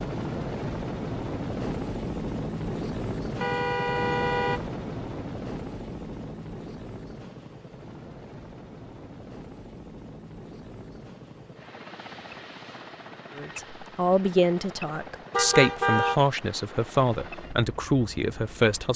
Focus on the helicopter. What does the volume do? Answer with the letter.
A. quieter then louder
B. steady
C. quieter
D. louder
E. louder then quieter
C.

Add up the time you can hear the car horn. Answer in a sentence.
The car horn can be heard for 2 seconds in total.